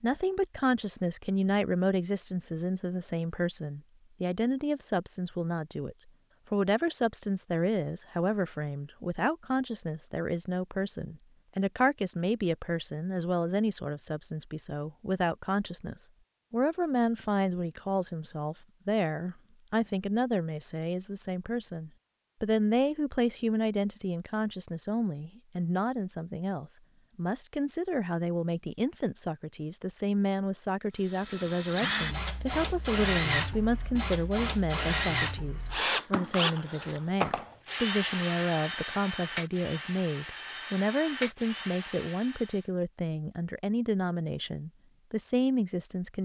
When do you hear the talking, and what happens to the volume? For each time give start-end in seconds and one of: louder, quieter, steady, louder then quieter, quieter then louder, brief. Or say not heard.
0.0-46.2 steady.